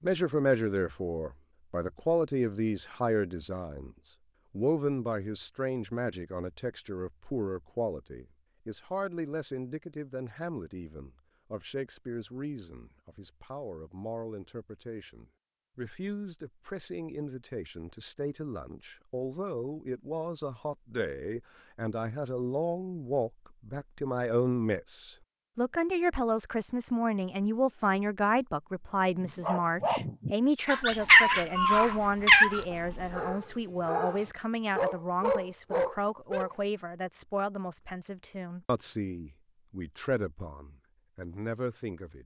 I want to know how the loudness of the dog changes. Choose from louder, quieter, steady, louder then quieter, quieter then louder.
quieter then louder.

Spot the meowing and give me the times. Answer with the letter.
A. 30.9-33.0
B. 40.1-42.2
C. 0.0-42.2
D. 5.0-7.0
A.